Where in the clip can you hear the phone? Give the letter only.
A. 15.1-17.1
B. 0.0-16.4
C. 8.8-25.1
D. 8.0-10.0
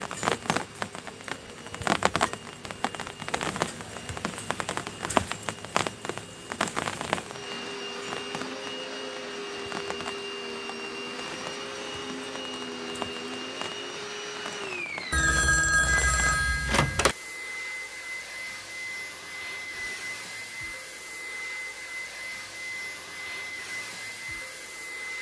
A.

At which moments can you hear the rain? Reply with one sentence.
You can hear the rain from 0.0 to 16.4 s.